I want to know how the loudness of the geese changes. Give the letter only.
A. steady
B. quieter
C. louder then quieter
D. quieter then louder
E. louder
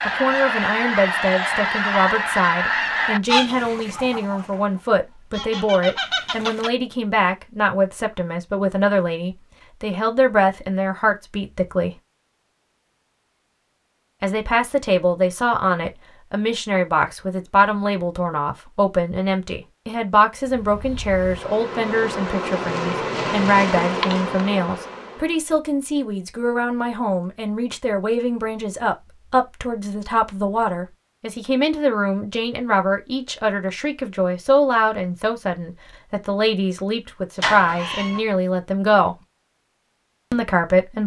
D.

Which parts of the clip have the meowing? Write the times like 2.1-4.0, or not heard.
37.4-38.2.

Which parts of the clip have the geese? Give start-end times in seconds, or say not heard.
0.0-6.7.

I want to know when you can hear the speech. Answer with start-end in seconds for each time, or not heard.
0.1-11.9, 14.2-39.1, 40.3-41.0.